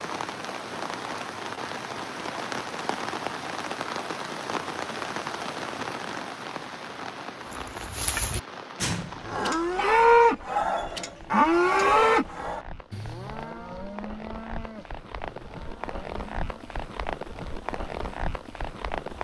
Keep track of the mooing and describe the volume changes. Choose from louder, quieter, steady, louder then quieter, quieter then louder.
louder then quieter.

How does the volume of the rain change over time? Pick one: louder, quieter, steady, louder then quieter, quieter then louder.
quieter then louder.